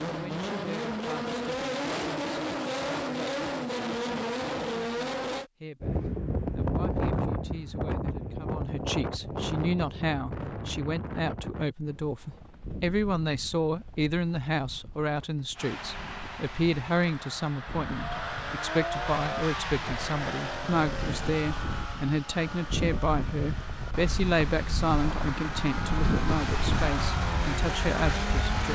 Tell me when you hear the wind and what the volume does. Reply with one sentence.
You can hear the wind from 5.8 to 28.6 s, getting quieter then louder.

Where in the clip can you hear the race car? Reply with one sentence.
You can hear the race car from 0.0 to 5.5 s and from 15.6 to 28.6 s.